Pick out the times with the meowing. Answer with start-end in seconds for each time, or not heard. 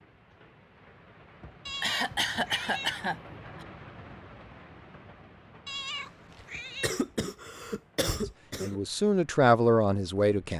1.6-3.0, 5.7-7.0.